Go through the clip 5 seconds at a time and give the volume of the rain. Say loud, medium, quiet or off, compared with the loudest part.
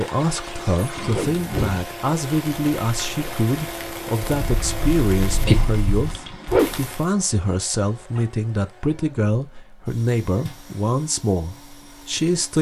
quiet, loud, off.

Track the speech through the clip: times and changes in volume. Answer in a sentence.
The speech can be heard from 0.0 to 12.5 s, at a steady volume.